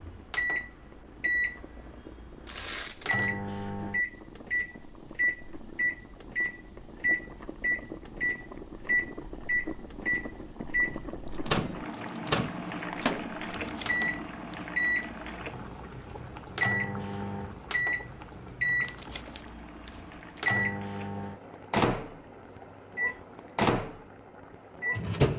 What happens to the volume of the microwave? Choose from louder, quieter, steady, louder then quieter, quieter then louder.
steady.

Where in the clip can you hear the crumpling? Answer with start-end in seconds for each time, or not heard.
2.5-3.4, 13.4-15.3, 18.8-20.6.